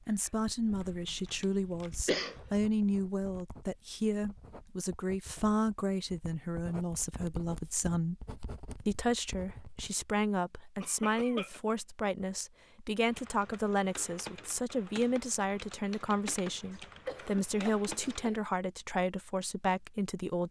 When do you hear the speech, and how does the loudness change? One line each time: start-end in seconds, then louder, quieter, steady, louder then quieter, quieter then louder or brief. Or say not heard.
0.1-20.4 steady.